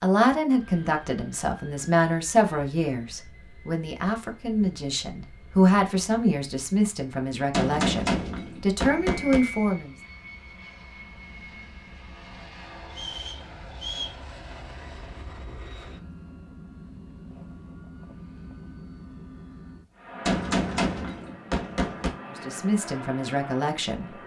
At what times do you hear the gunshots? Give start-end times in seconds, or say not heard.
7.5-9.4, 20.2-22.1.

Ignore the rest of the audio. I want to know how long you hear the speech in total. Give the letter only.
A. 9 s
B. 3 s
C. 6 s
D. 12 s
D.